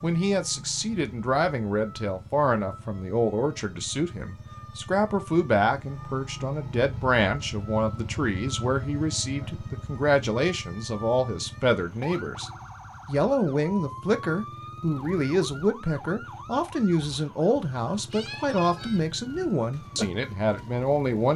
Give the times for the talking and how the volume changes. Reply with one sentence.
The talking can be heard from 0.0 to 21.3 s, at a steady volume.